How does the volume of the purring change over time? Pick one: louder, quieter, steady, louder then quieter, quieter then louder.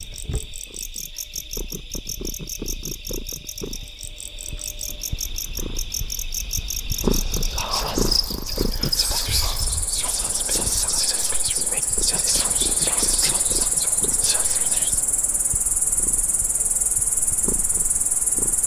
louder then quieter.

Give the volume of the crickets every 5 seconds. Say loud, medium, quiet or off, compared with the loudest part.
medium, loud, loud, loud.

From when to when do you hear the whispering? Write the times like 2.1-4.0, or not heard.
7.0-15.0.